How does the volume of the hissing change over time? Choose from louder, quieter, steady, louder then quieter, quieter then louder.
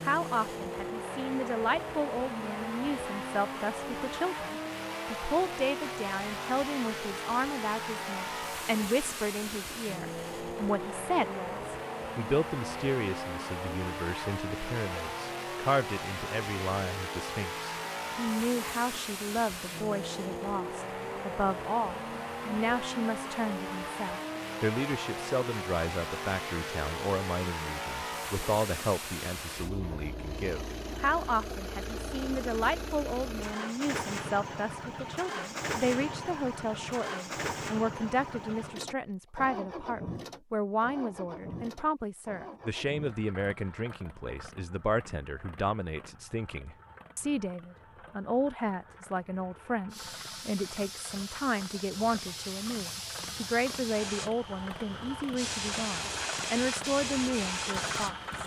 louder.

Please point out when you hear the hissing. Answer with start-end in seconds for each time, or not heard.
49.9-58.4.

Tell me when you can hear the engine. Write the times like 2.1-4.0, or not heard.
0.0-58.4.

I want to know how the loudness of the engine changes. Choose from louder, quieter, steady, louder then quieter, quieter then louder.
quieter.